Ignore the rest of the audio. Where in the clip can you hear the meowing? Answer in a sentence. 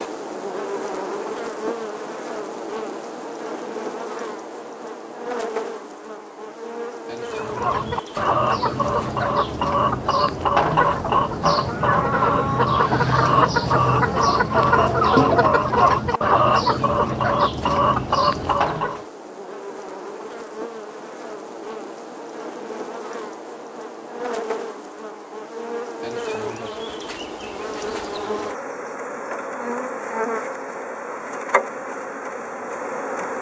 The meowing can't be heard in this clip.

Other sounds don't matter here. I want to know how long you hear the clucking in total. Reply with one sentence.
You can hear the clucking for 12 seconds altogether.